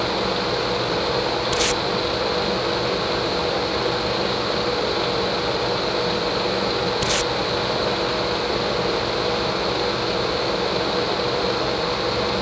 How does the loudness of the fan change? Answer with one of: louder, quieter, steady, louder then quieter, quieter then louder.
steady.